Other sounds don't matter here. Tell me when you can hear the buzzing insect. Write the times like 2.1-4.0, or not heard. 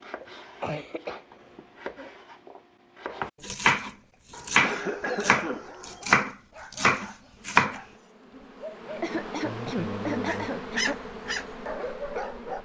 7.3-12.5.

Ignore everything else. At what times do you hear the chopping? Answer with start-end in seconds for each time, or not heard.
0.0-7.8.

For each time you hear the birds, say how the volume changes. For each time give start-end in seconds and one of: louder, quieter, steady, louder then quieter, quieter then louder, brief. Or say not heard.
not heard.